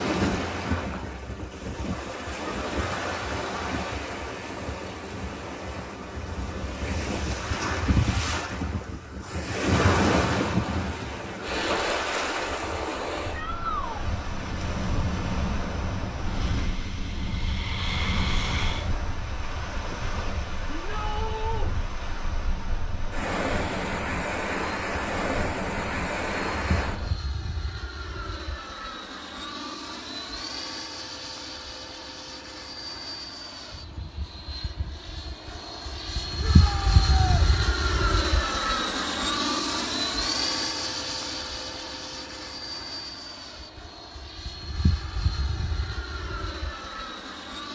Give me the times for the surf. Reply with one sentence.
The surf can be heard from 0.0 to 27.2 s.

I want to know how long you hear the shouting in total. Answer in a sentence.
You can hear the shouting for 3 seconds altogether.